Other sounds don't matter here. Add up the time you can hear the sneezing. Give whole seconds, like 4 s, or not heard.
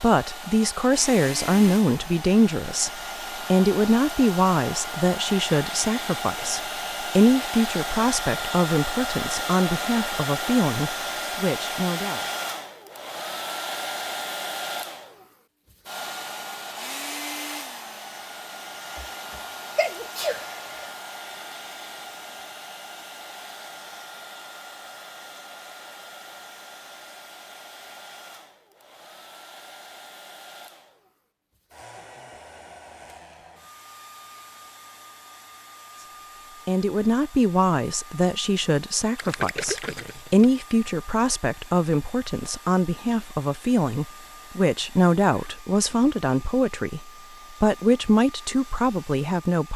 2 s.